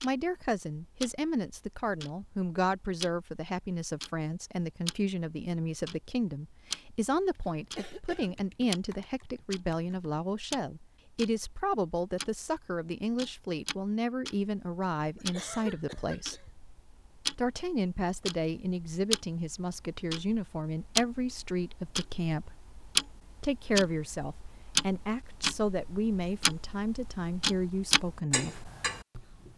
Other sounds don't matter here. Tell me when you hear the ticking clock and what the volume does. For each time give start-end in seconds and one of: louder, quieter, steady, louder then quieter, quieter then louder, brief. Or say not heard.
0.0-29.5 louder.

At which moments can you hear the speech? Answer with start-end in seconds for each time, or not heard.
0.0-16.4, 17.4-22.6, 23.4-28.7.